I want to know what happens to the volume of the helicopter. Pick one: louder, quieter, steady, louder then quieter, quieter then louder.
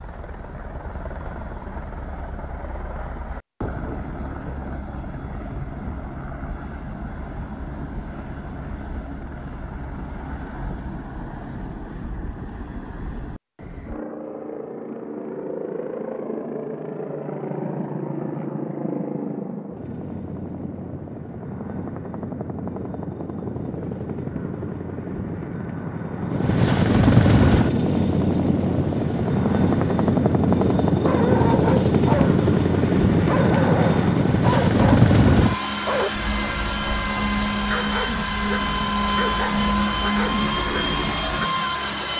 louder.